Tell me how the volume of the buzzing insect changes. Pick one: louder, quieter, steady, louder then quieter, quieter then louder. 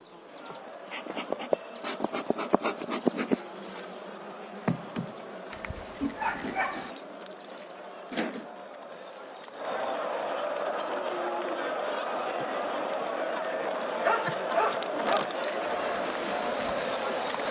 quieter then louder.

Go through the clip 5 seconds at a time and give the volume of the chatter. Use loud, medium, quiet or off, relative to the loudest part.
quiet, medium, loud, loud.